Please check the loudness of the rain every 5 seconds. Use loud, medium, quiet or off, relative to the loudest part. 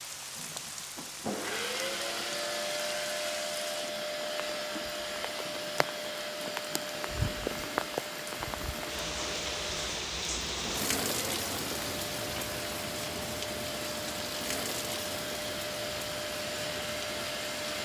medium, loud, loud, medium.